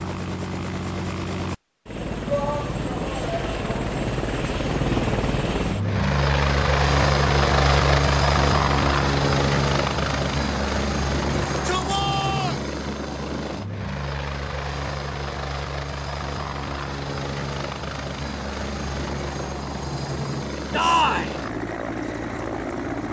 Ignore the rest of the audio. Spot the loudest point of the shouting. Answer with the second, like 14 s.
21 s.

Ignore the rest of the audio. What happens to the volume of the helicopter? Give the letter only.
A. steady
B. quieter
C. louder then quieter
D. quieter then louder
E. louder
C.